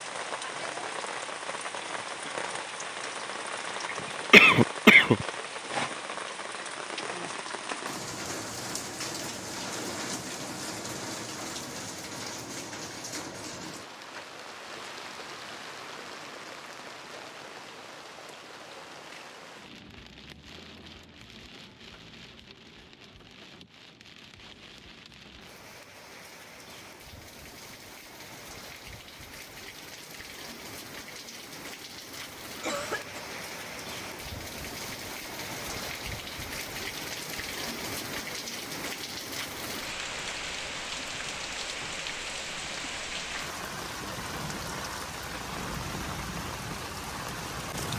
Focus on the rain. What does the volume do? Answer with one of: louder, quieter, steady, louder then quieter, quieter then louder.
quieter then louder.